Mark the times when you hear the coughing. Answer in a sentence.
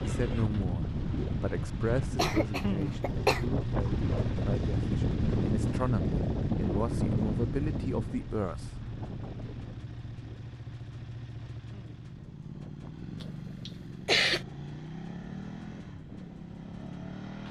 The coughing can be heard from 2.0 to 3.5 s and from 13.2 to 14.4 s.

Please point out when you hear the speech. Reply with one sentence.
The speech can be heard from 0.0 to 8.9 s.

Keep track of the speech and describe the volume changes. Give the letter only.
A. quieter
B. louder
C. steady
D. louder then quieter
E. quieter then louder
E.